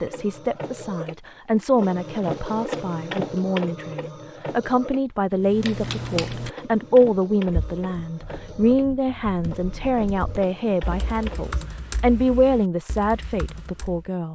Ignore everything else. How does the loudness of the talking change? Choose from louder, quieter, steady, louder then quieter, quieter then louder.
steady.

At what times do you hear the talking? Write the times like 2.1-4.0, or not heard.
0.0-14.3.